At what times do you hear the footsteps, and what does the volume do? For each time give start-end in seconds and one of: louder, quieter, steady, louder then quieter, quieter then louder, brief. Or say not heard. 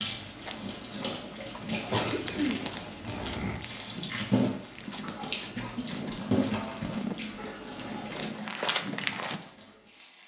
0.3-9.4 louder.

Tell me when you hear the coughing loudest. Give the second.
2 s.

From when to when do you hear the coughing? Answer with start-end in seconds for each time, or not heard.
1.9-3.6, 5.5-7.4.